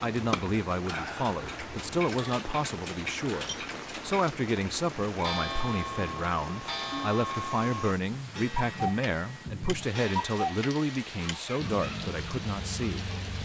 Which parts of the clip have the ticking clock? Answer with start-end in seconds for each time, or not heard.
0.1-13.3.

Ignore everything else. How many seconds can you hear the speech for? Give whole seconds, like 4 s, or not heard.
13 s.